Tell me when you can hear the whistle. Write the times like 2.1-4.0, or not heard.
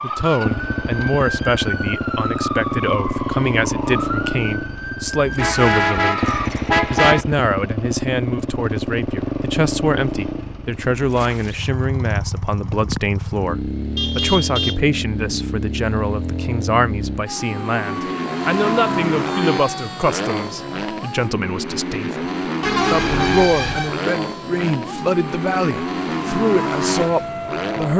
not heard.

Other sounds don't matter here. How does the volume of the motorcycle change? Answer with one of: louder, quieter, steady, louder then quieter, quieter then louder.
steady.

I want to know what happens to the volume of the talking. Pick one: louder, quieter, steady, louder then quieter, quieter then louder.
steady.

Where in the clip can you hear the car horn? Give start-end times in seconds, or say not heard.
5.3-7.2, 13.9-14.8, 22.6-23.9.